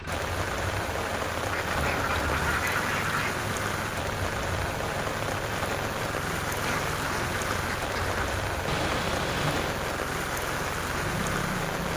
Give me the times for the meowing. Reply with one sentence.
You can hear the meowing from 1.8 to 2.5 s and from 8.7 to 9.8 s.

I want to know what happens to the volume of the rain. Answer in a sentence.
The volume of the rain stays about the same.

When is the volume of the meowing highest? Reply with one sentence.
The volume of the meowing peaks at 9 seconds.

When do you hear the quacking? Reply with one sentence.
You can hear the quacking from 1.5 to 3.3 s and from 6.6 to 8.4 s.